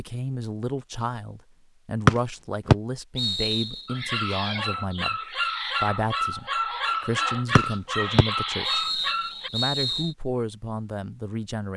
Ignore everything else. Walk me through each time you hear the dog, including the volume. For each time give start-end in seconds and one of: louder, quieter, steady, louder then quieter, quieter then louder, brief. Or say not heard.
3.9-9.5 steady.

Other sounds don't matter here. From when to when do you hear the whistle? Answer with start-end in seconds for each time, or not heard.
2.0-3.8, 7.5-10.1.